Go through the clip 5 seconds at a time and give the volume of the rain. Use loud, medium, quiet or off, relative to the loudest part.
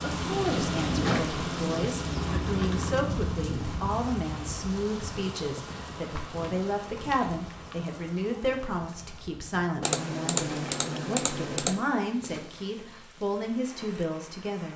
loud, medium, quiet.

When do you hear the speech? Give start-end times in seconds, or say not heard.
0.0-14.7.